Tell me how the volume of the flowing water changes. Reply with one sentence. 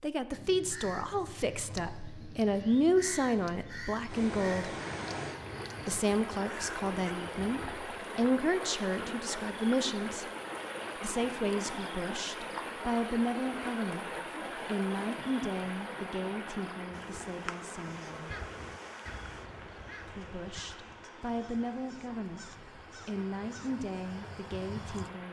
The volume of the flowing water goes down.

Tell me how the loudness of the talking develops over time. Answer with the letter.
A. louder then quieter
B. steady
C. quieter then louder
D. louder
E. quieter
E.